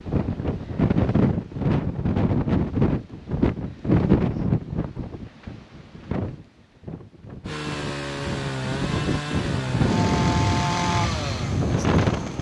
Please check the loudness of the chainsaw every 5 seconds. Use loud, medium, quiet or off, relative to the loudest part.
off, loud, loud.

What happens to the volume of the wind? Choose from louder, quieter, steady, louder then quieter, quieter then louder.
quieter then louder.